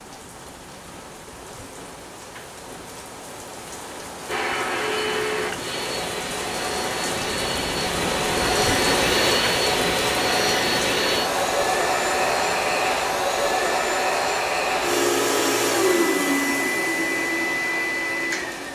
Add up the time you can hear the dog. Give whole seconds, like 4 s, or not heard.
not heard.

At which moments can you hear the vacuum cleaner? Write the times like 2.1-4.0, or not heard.
4.2-18.6.